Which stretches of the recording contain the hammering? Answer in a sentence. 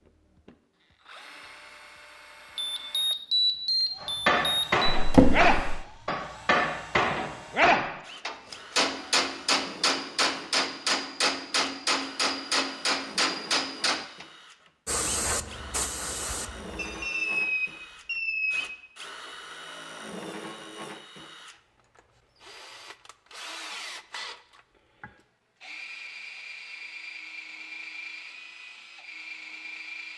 The hammering can be heard from 4.0 to 14.2 s.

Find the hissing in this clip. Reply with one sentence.
You can hear the hissing from 14.8 to 16.9 s.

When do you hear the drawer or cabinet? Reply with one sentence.
You can hear the drawer or cabinet from 5.0 to 5.8 s.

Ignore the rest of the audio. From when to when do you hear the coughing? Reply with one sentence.
The coughing can't be heard in this clip.